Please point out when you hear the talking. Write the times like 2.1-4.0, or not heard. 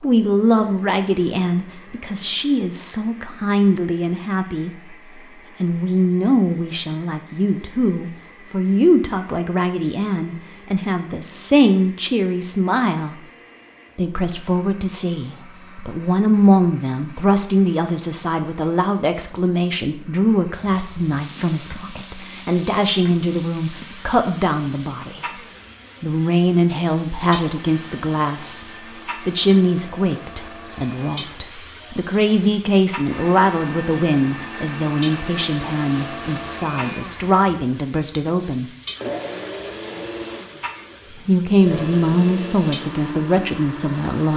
0.0-5.0, 5.6-13.2, 13.9-25.2, 26.0-38.6, 41.1-44.3.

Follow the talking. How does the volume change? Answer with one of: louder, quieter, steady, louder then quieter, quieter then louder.
steady.